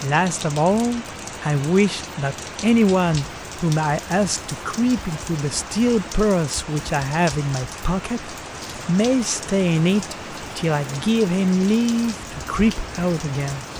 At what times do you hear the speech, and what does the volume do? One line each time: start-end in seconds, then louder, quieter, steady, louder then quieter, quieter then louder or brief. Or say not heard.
0.0-13.7 steady.